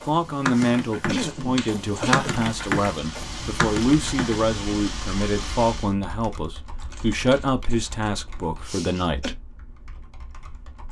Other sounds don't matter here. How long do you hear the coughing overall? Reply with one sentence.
You can hear the coughing for 3 seconds altogether.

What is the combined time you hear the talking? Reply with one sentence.
The talking can be heard for 9 seconds in total.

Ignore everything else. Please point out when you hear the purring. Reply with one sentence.
The purring can't be heard in this clip.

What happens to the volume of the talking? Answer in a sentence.
The loudness of the talking stays about the same.